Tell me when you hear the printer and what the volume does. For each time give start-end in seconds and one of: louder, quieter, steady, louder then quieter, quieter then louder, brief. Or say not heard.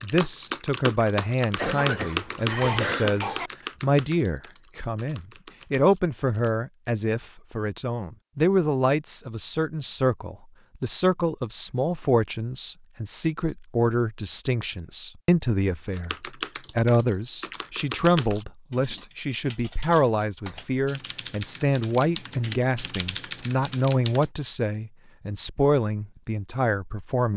not heard.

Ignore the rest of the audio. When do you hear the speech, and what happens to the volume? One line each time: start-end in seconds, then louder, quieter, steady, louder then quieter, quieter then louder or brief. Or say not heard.
0.0-27.3 steady.